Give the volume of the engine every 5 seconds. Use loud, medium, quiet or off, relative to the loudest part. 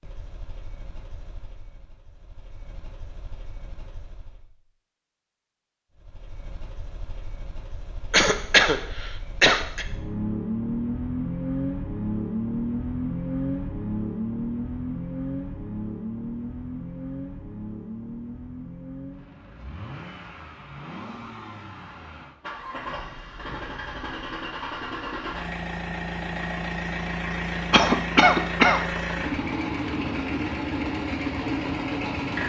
quiet, quiet, loud, medium, medium, loud, loud.